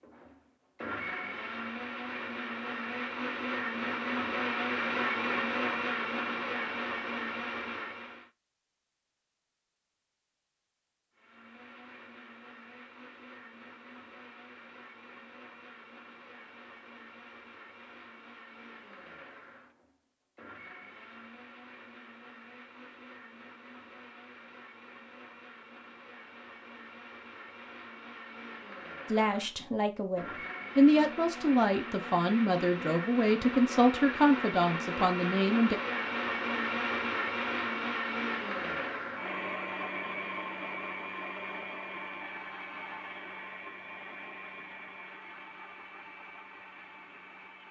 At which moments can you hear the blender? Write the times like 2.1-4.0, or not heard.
0.0-8.3, 11.2-47.6.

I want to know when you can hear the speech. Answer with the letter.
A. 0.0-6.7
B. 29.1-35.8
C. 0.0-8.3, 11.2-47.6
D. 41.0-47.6
B.